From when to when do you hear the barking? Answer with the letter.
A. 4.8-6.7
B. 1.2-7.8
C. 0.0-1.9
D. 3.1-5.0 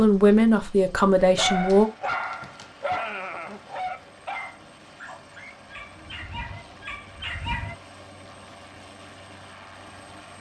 B.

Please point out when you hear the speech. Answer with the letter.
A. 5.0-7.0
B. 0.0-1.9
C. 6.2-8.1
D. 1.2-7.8
B.